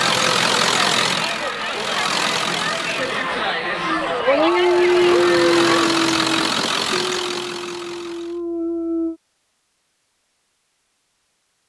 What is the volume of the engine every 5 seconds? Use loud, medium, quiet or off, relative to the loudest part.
loud, loud, off.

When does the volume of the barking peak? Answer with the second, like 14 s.
5 s.